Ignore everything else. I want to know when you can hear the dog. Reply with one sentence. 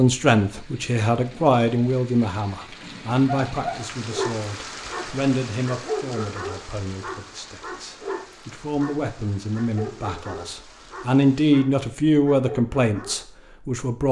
You can hear the dog from 3.2 to 13.2 s.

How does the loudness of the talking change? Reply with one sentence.
The loudness of the talking goes down, then up.